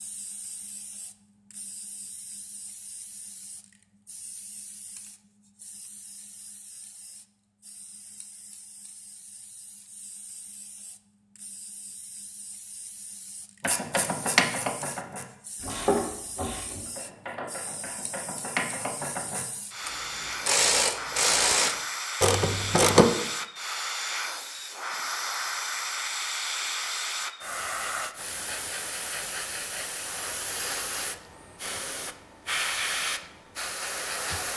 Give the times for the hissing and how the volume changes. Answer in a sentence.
The hissing can be heard from 0.0 to 34.5 s, getting louder.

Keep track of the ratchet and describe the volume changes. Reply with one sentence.
The volume of the ratchet goes down, then up.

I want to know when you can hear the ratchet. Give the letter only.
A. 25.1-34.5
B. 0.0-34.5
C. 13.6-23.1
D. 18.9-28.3
C.